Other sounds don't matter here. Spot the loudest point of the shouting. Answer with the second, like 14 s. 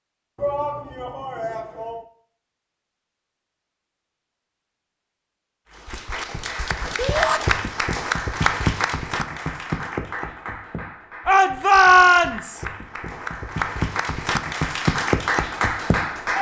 12 s.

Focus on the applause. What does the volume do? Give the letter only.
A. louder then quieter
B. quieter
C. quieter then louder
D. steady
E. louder
C.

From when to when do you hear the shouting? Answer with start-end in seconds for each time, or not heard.
0.3-2.0, 7.0-7.4, 11.2-12.7.